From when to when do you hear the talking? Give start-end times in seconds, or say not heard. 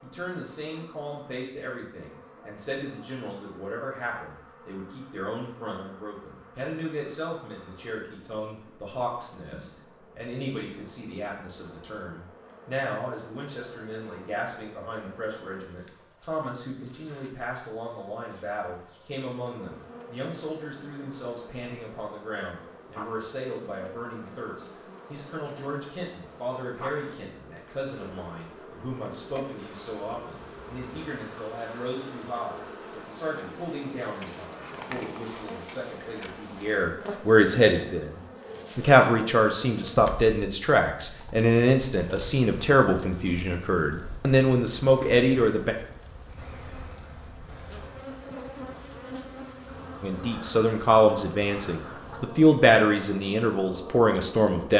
0.0-45.8, 50.0-54.7.